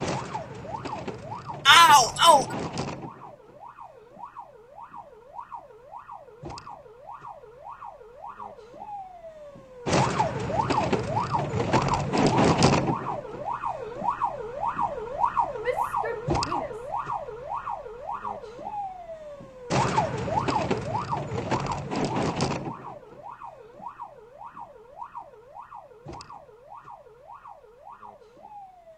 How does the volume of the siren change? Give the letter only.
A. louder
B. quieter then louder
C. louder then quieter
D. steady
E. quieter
C.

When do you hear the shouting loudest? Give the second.
2 s.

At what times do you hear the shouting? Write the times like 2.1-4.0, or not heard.
1.6-2.5, 15.6-16.9.